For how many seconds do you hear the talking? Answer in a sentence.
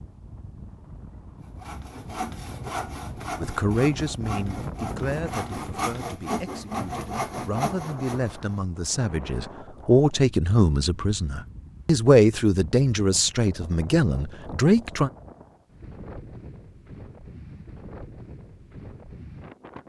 The talking can be heard for 12 seconds in total.